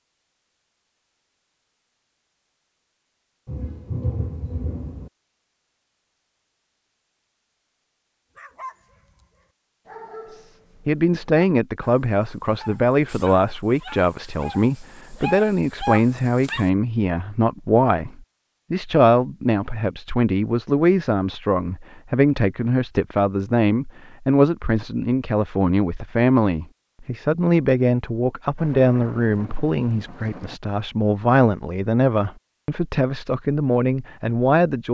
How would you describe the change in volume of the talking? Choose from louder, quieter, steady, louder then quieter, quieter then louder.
steady.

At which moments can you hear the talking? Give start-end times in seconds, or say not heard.
10.3-34.8.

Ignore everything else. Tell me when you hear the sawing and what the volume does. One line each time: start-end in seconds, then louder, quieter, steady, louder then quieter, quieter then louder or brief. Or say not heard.
not heard.